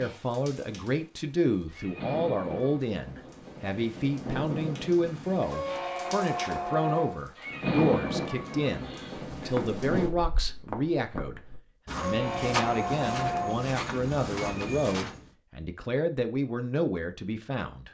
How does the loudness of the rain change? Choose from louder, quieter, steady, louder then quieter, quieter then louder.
louder.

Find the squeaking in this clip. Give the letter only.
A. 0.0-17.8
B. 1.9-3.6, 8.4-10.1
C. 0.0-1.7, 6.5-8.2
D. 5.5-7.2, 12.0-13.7
D.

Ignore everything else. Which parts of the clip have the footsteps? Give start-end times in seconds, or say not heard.
9.4-15.2.